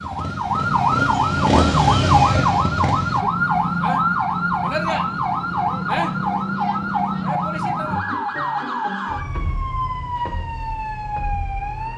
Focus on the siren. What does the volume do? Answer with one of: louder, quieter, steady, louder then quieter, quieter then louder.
quieter.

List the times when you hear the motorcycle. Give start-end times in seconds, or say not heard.
0.0-3.2.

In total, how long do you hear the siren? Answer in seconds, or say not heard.
12 s.